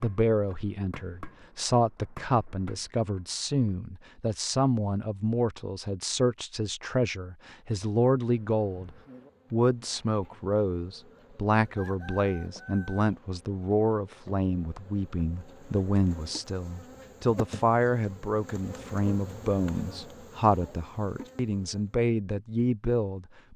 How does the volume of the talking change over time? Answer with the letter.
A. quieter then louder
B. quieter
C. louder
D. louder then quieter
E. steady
E.